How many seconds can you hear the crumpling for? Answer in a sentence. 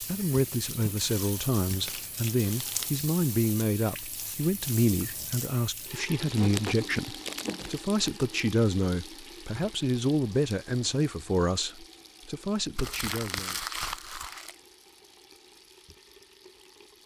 You can hear the crumpling for 5 seconds altogether.